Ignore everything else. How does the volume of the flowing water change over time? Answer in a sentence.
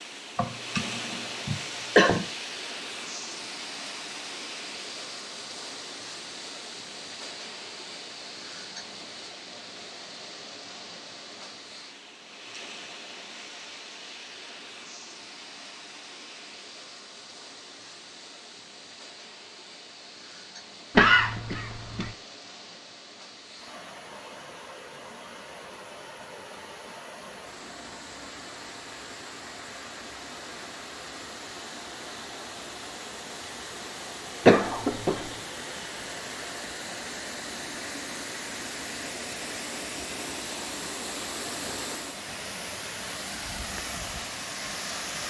The loudness of the flowing water goes down, then up.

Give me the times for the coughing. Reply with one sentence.
The coughing can be heard from 0.3 to 2.2 s, from 20.9 to 22.1 s and from 34.5 to 35.1 s.